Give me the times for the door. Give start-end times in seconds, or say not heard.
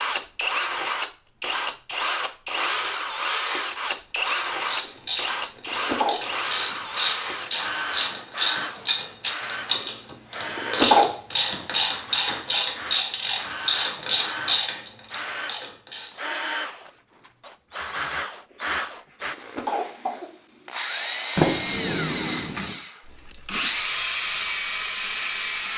21.4-22.8.